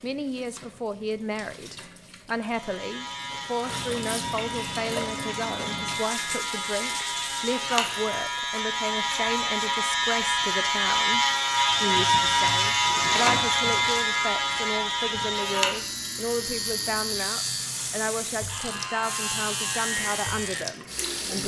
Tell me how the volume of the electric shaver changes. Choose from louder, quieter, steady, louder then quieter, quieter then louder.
louder then quieter.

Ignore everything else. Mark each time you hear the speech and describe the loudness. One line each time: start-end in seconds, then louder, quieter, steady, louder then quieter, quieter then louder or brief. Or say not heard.
0.0-21.4 steady.